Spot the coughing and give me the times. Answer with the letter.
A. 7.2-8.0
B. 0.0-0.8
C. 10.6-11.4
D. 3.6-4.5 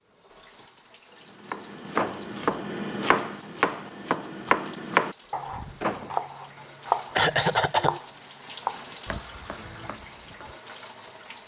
A.